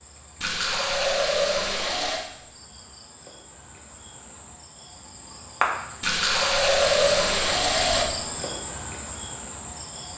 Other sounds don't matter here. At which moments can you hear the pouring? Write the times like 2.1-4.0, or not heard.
0.4-2.2, 6.0-8.1.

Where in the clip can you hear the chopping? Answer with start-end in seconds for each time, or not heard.
not heard.